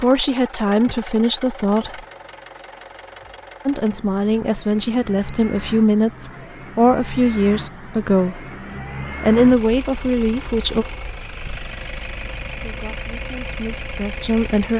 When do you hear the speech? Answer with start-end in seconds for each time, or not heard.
0.0-2.0, 3.6-8.4, 9.2-10.8, 12.6-14.7.